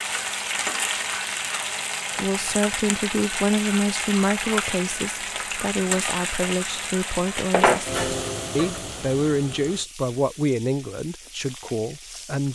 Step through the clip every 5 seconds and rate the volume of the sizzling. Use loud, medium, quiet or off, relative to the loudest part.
loud, loud, quiet.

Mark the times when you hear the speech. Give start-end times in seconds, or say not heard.
2.1-12.4.